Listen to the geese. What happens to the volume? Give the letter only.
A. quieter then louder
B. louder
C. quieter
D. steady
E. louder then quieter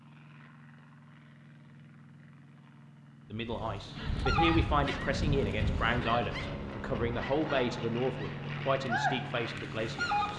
A.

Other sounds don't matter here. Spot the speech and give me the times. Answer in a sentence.
You can hear the speech from 3.3 to 10.3 s.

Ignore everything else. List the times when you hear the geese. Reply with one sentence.
The geese can be heard from 3.4 to 10.3 s.